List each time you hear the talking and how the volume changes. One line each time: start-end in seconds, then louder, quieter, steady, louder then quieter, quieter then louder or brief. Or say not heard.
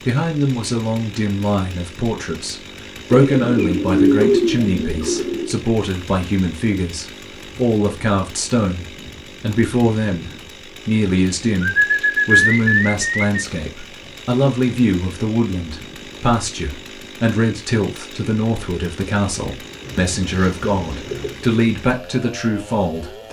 0.1-23.2 steady.